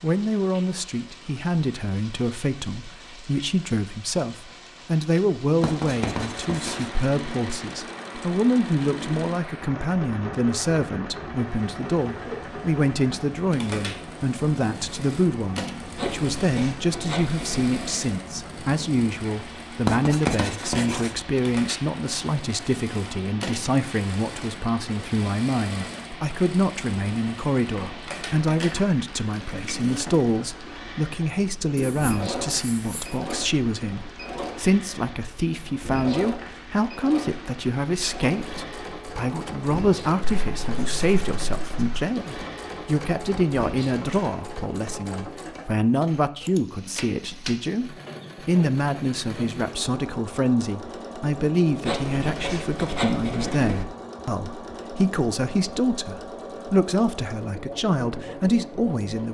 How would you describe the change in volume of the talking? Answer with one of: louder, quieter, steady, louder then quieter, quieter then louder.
steady.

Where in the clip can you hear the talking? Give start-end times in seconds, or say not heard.
0.0-59.3.